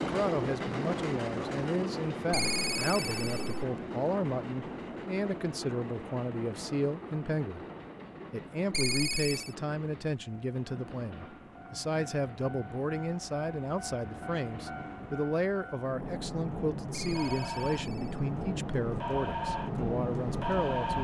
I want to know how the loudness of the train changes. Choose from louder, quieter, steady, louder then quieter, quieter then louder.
quieter then louder.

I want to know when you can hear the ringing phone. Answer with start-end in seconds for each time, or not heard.
2.3-3.6, 8.7-9.6, 16.9-18.2.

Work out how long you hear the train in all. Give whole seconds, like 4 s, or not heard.
21 s.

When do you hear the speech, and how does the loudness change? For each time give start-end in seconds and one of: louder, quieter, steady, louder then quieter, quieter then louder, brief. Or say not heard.
0.0-7.7 steady
8.3-20.9 steady.